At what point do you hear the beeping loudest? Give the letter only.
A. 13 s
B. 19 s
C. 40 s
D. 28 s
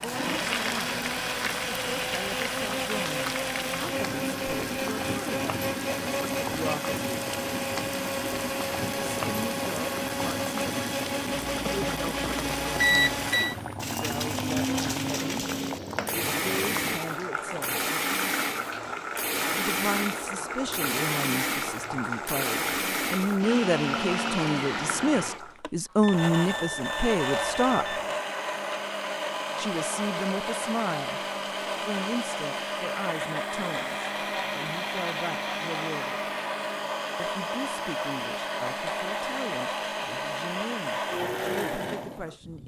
A.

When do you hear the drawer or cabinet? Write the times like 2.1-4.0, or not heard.
not heard.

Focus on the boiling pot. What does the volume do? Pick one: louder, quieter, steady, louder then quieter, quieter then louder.
steady.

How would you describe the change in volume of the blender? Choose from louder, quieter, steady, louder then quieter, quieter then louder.
steady.